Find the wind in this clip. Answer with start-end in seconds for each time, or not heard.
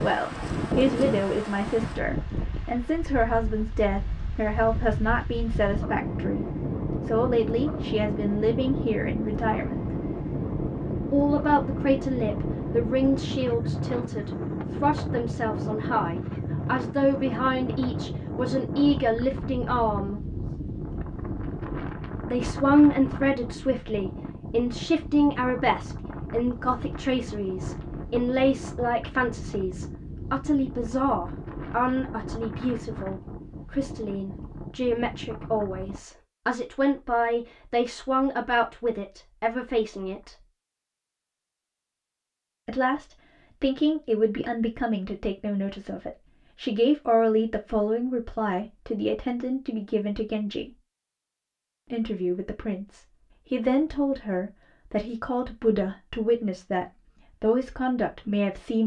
0.0-36.0.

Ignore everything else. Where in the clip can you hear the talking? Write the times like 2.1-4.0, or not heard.
0.0-9.9, 11.1-20.2, 22.2-40.4, 42.6-50.8, 51.9-58.8.